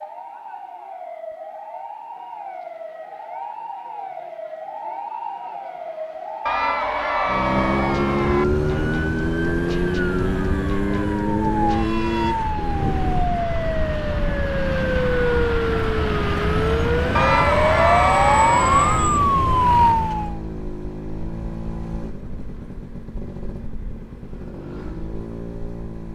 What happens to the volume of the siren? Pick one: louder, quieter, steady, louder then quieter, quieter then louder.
louder.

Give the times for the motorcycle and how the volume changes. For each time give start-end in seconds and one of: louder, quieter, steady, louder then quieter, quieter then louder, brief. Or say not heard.
7.2-26.1 quieter.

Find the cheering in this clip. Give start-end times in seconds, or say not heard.
6.5-8.4, 17.1-19.1.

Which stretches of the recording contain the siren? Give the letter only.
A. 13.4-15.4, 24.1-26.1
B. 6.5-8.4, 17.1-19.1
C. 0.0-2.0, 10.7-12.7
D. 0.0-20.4
D.